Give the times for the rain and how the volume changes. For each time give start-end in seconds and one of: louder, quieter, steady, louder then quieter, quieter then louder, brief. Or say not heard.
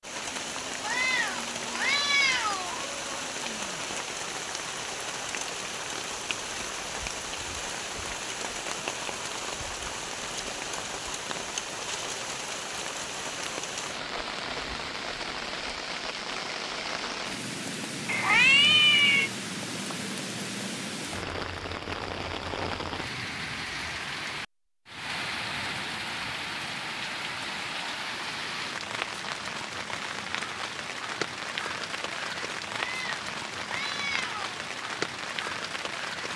0.0-36.3 steady.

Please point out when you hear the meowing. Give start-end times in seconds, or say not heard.
0.8-3.0, 18.1-19.3, 32.9-34.6.